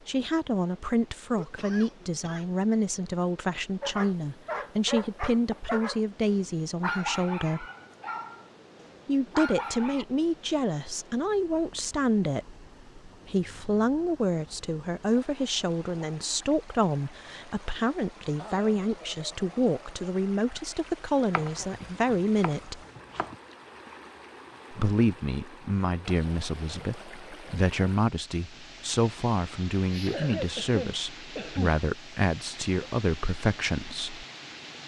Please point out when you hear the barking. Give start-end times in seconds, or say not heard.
3.8-10.1.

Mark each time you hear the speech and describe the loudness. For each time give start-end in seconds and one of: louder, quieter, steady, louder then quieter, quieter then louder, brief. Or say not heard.
0.1-7.7 steady
9.1-22.8 steady
24.7-34.2 steady.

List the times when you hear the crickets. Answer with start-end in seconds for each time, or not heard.
not heard.